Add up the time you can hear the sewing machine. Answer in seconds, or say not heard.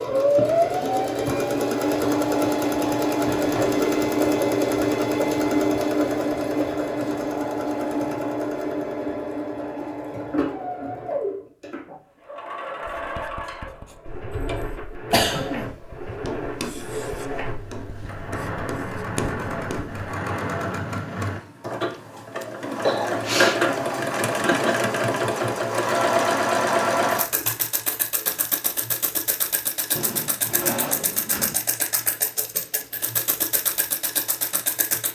35 s.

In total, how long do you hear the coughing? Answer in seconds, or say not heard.
2 s.